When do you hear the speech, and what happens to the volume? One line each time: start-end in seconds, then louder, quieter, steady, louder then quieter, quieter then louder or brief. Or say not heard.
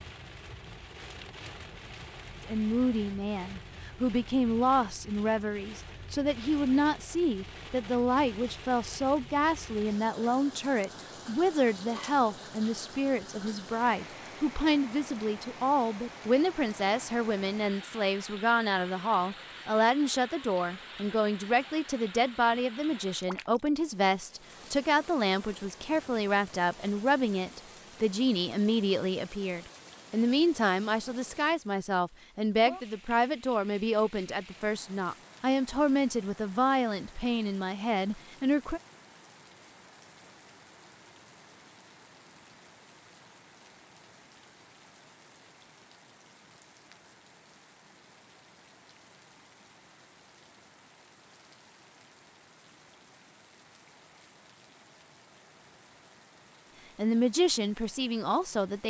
2.5-38.8 steady
57.0-58.8 brief.